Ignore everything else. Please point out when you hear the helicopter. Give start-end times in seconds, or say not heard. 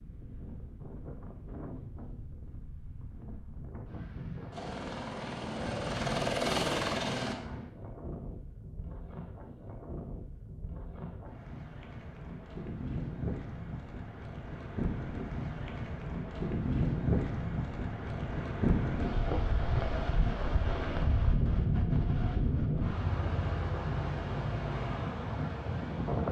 4.5-7.3.